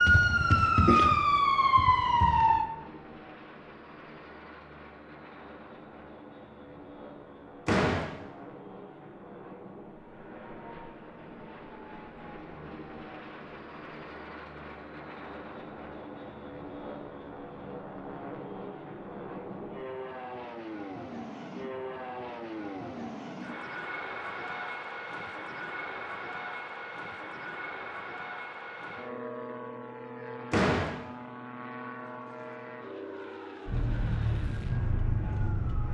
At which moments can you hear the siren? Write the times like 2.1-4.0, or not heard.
0.0-2.6, 33.6-35.8.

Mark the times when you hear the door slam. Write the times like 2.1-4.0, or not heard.
7.7-8.1, 30.5-30.9.